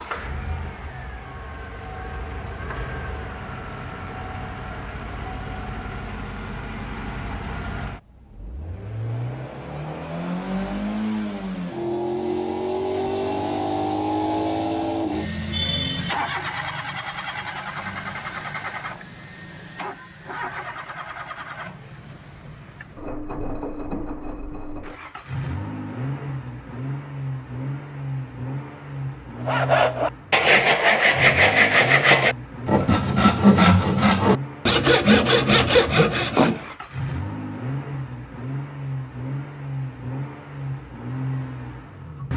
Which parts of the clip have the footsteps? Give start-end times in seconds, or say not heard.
not heard.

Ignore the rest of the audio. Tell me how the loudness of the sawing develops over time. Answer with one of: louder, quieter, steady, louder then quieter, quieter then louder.
steady.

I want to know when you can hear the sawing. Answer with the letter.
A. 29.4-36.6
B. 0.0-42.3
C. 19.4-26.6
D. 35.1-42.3
A.